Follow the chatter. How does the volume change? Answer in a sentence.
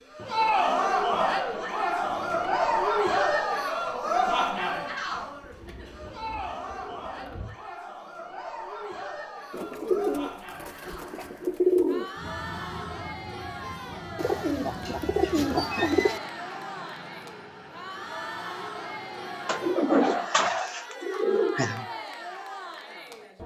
The volume of the chatter goes down.